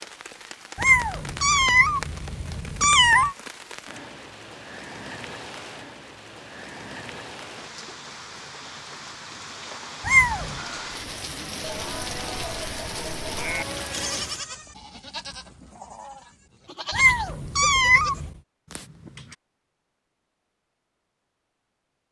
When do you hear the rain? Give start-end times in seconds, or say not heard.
0.0-14.4.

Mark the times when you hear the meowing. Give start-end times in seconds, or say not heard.
0.8-3.4, 10.0-10.6, 16.9-18.3.